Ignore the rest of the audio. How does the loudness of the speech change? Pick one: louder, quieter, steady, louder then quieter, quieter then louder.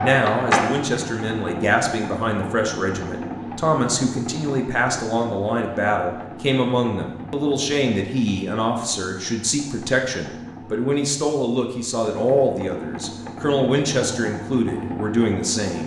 steady.